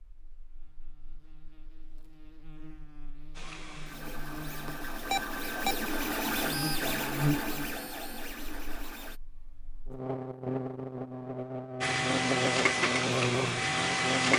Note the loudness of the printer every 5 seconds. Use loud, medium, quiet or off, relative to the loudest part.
quiet, medium, loud.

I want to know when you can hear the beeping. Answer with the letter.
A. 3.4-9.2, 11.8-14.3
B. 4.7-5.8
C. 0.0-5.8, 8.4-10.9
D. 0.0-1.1
B.